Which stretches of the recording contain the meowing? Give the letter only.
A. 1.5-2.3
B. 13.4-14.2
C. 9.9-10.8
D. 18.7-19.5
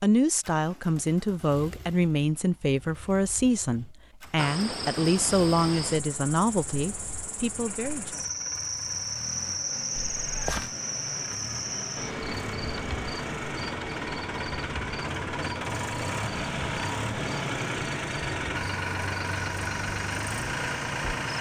C.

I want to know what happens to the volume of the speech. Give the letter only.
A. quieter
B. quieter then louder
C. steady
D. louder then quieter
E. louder
C.